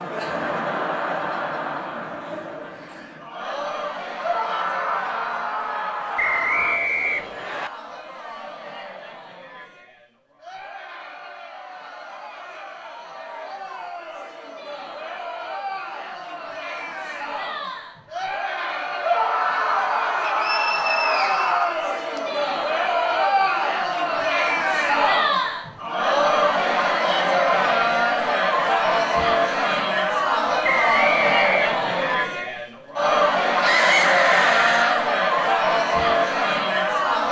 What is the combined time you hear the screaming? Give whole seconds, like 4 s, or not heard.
7 s.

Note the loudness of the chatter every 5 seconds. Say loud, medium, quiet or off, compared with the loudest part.
medium, quiet, quiet, medium, loud, loud, loud, loud.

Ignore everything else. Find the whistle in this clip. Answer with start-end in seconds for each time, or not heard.
6.2-7.7, 20.2-22.2, 30.6-32.1.